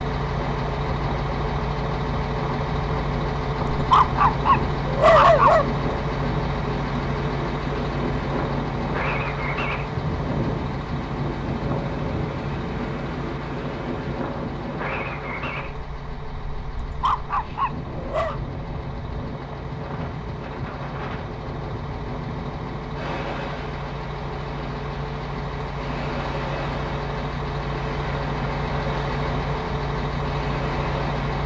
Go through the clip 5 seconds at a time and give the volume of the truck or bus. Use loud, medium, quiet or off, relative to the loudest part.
loud, loud, medium, medium, medium, loud, loud.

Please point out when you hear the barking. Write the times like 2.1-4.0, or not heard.
3.7-5.7, 16.9-18.4.